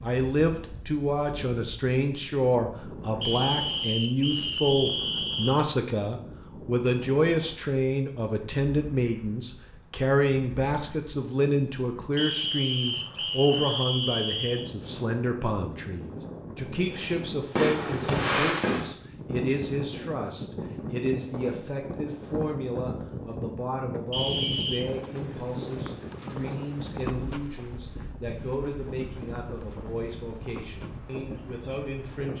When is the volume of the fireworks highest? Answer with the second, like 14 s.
18 s.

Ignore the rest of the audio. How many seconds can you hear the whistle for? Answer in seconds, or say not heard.
6 s.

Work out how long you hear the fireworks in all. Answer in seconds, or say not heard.
2 s.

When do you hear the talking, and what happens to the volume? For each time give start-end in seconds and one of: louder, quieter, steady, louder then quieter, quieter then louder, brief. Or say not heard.
0.0-32.3 quieter.